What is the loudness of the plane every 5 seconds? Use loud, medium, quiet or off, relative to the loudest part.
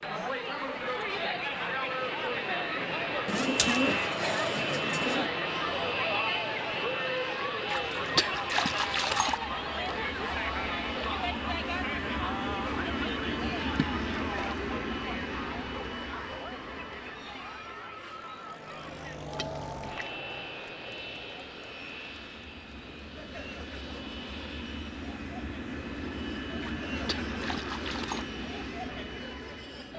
loud, loud, loud, medium, medium, loud.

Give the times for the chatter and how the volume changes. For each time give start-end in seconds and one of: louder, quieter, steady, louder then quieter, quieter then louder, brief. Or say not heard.
0.0-29.9 quieter.